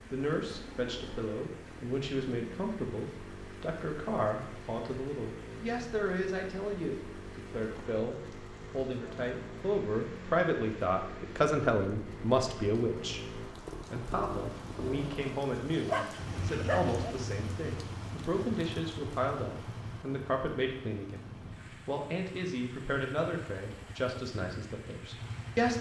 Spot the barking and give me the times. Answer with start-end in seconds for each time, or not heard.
15.8-17.1.